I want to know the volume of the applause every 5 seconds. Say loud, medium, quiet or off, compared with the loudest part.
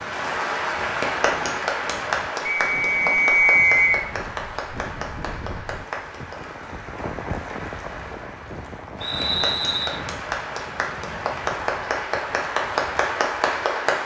loud, medium, loud.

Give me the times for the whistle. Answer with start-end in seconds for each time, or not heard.
2.5-4.0, 9.0-10.0.